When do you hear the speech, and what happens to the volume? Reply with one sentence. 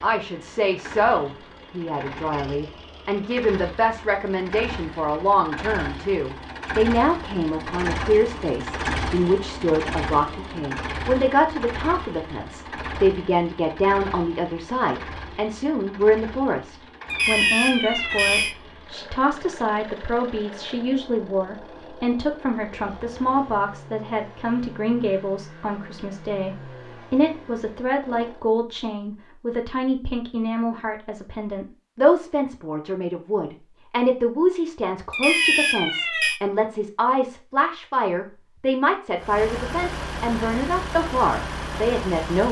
The speech can be heard from 0.0 to 42.4 s, at a steady volume.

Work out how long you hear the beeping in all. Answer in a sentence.
The beeping can be heard for 3 seconds in total.